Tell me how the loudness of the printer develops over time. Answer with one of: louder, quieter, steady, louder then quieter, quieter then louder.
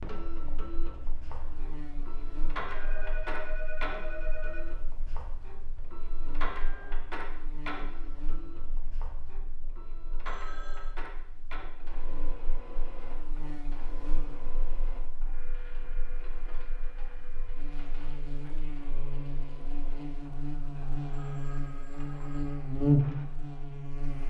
quieter.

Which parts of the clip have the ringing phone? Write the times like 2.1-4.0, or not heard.
2.6-4.7, 10.2-10.9, 21.1-22.6.